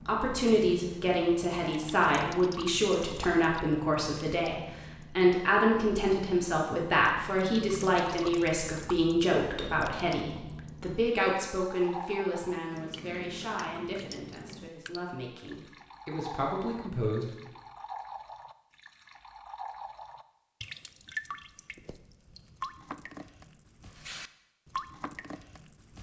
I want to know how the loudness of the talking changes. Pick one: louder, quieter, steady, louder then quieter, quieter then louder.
quieter.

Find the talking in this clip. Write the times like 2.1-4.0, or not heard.
0.1-17.4.